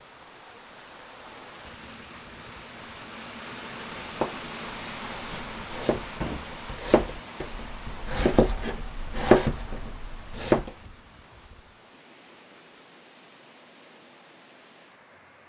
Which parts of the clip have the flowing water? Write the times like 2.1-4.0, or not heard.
0.0-15.4.